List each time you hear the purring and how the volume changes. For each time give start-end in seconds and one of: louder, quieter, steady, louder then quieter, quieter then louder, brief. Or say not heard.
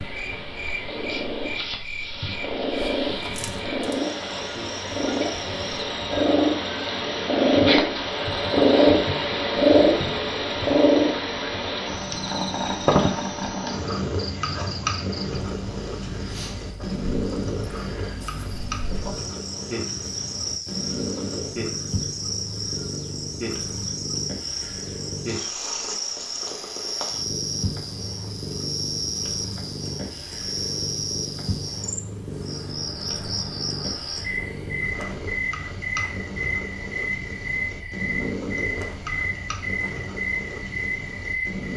0.0-41.7 quieter.